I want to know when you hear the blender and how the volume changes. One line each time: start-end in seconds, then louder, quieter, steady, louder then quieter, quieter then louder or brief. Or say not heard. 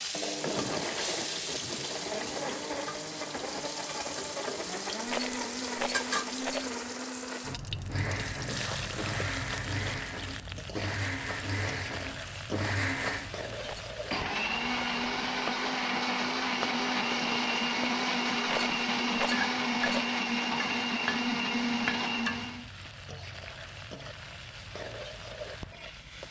0.1-22.6 louder.